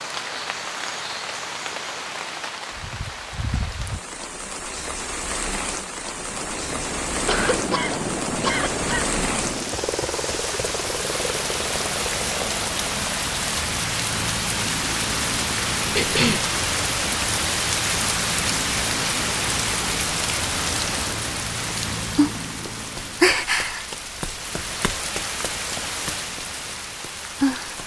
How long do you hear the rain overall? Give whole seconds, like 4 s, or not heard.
28 s.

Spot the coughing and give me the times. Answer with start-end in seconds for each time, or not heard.
7.2-9.1, 15.9-16.5.